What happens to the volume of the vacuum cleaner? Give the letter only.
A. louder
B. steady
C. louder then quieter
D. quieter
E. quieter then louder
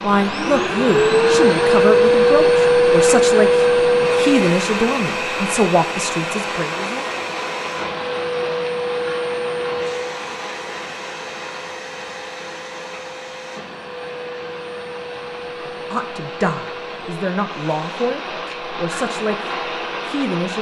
D.